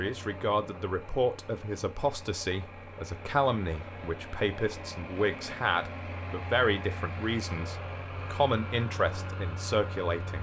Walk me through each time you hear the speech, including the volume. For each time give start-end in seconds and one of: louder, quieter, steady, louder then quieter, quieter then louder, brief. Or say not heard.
0.0-10.3 steady.